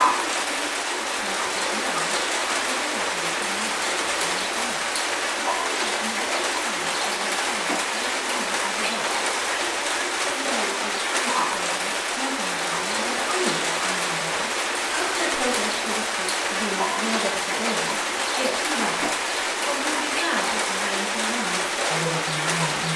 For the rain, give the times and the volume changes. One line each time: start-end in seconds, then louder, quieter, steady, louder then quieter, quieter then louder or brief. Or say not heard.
0.0-22.9 steady.